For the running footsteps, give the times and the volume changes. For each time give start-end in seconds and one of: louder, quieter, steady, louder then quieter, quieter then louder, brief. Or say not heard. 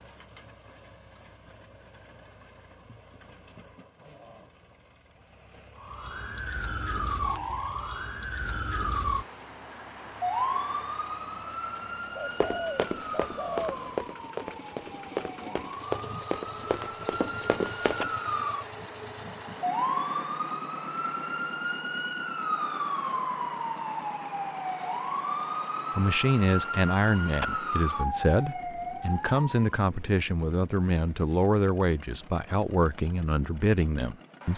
12.4-18.1 steady.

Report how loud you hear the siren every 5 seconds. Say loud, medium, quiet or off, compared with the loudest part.
off, loud, loud, loud, loud, loud, off.